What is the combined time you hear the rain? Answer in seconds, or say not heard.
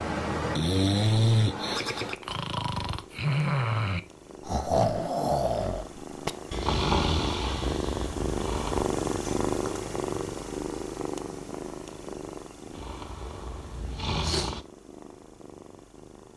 not heard.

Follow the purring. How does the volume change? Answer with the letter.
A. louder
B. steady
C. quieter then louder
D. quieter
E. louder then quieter
E.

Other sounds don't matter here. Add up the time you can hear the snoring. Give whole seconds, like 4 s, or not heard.
11 s.